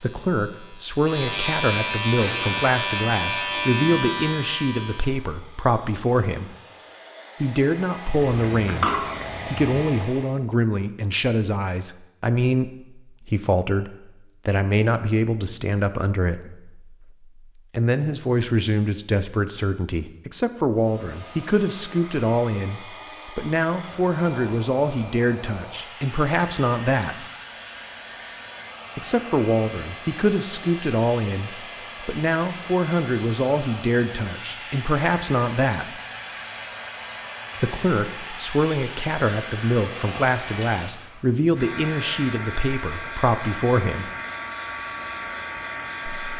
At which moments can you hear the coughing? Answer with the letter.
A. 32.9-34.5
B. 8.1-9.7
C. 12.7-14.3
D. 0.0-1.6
B.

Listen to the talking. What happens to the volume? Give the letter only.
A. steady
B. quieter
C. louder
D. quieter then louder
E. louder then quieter
A.